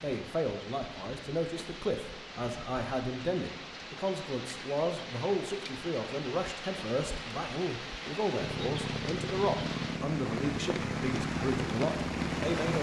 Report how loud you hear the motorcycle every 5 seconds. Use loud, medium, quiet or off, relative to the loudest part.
off, loud, loud.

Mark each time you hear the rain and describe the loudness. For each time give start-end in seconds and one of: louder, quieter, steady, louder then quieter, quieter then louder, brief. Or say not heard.
0.0-12.7 louder.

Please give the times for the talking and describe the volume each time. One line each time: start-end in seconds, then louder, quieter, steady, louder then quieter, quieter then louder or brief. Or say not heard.
0.0-12.7 steady.